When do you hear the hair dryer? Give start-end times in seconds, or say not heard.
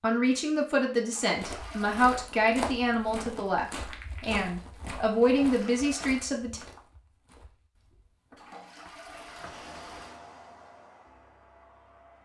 9.0-12.2.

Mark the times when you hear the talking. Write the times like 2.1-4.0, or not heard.
0.0-6.6.